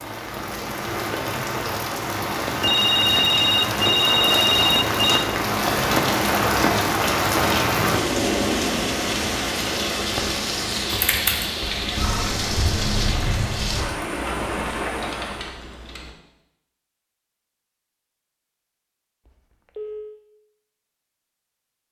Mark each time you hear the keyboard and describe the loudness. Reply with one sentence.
The keyboard can be heard from 10.8 to 16.1 s, getting quieter.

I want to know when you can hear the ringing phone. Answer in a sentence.
The ringing phone can be heard from 2.6 to 5.2 s, from 11.7 to 12.3 s and from 19.2 to 20.1 s.